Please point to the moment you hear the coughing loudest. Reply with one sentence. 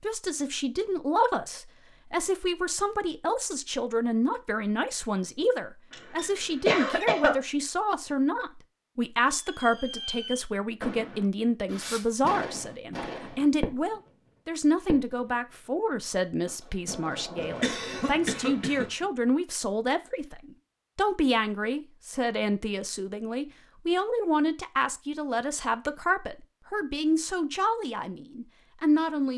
The loudest moment of the coughing is at 7 seconds.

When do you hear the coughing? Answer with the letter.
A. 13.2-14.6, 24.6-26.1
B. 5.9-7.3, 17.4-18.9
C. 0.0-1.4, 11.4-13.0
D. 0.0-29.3
B.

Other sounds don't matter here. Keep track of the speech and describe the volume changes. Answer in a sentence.
The loudness of the speech stays about the same.